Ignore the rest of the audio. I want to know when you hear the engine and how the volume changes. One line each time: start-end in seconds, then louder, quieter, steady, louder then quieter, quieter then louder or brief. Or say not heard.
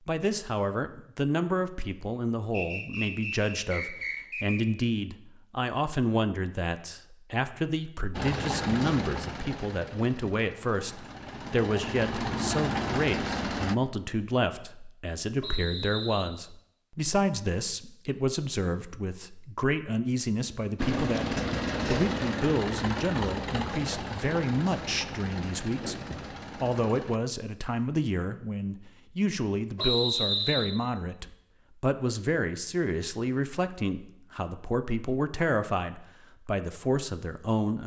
8.1-13.8 quieter then louder
20.8-27.2 quieter.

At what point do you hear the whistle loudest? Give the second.
30 s.